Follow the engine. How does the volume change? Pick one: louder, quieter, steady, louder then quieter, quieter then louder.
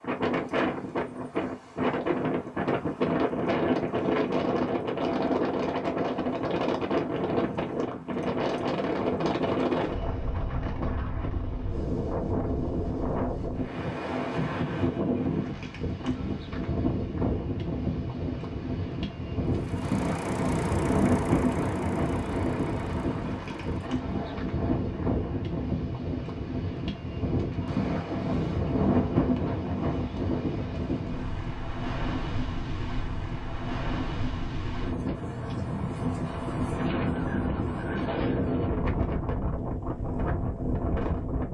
quieter.